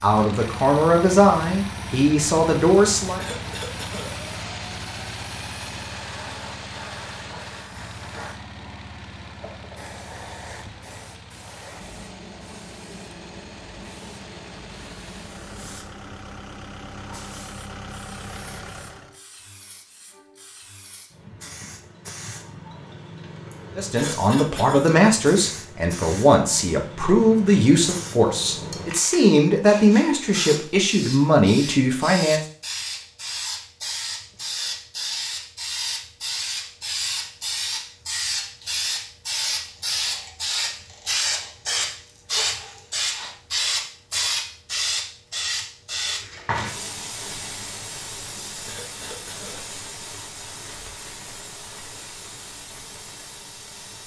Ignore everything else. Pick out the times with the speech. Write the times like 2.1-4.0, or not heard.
0.0-3.2, 23.8-32.4.